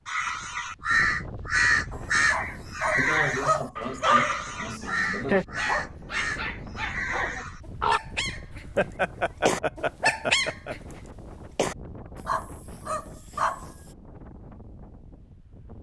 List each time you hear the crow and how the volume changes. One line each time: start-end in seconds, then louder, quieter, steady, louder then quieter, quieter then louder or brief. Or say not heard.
0.1-8.0 quieter.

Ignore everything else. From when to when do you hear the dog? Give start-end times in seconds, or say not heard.
1.9-13.7.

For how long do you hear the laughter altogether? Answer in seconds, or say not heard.
5 s.